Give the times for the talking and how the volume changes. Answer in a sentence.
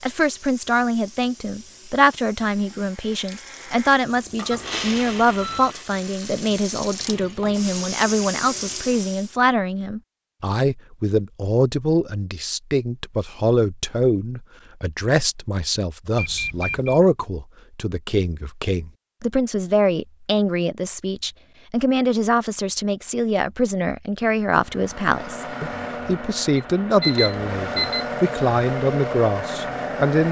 You can hear the talking from 0.0 to 30.2 s, at a steady volume.